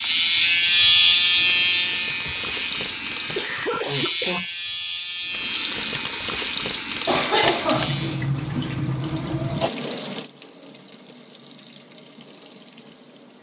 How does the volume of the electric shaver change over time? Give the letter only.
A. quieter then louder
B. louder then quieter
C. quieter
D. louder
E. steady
C.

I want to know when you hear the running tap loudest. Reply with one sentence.
The loudest moment of the running tap is at 8 seconds.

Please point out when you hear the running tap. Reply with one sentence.
You can hear the running tap from 0.0 to 3.7 s and from 5.3 to 13.3 s.